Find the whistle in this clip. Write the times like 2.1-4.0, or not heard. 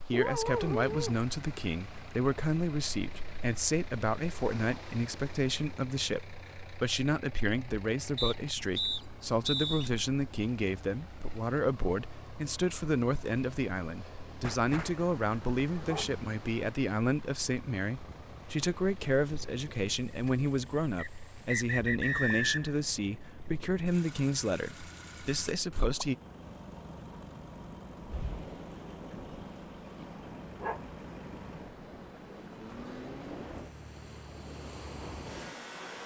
8.2-9.9, 20.9-22.8.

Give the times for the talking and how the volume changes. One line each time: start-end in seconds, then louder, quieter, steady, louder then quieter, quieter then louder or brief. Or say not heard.
0.0-26.1 steady.